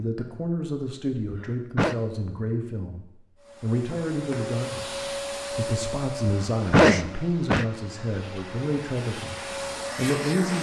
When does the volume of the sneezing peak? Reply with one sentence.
The loudest moment of the sneezing is at 7 seconds.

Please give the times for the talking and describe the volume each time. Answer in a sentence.
The talking can be heard from 0.0 to 10.5 s, at a steady volume.